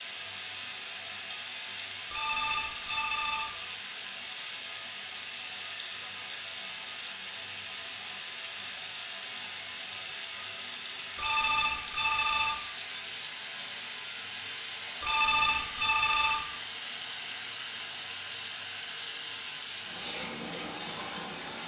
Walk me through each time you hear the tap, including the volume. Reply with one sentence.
You can hear the tap from 0.0 to 21.6 s, at a steady volume.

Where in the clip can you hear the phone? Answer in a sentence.
You can hear the phone from 2.1 to 3.5 s, from 11.2 to 12.6 s and from 15.0 to 16.4 s.